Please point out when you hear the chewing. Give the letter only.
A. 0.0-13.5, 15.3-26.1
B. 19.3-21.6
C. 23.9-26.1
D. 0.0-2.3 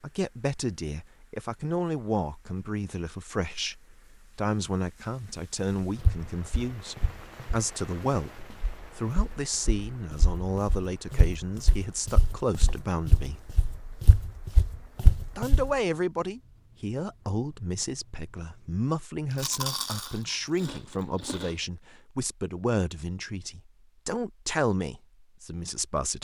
B.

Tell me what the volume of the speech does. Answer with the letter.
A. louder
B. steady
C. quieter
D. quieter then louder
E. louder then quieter
B.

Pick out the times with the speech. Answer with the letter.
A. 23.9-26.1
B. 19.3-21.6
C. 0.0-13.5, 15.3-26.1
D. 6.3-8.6
C.